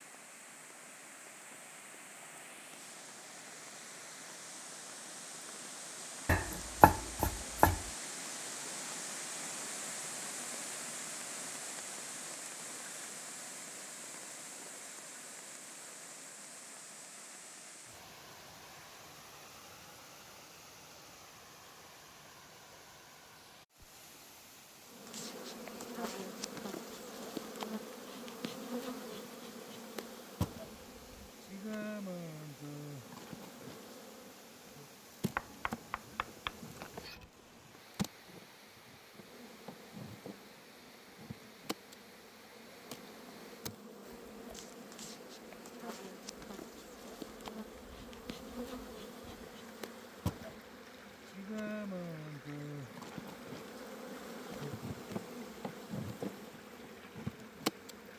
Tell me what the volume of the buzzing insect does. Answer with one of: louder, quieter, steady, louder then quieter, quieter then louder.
quieter then louder.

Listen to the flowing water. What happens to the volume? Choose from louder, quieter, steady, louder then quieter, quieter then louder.
quieter.